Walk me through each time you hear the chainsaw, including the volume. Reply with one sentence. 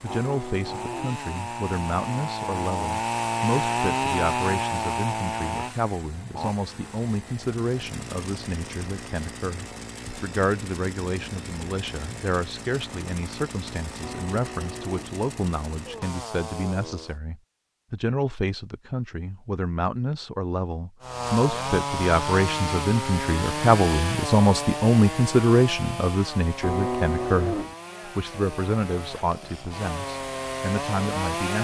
You can hear the chainsaw from 0.0 to 17.2 s, getting quieter; and from 21.0 to 31.6 s, getting quieter then louder.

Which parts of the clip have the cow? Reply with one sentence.
The cow can be heard from 0.1 to 1.2 s, from 14.0 to 15.1 s and from 26.6 to 27.8 s.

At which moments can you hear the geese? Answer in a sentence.
You can't hear the geese here.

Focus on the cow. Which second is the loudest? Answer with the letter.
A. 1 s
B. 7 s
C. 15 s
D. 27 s
D.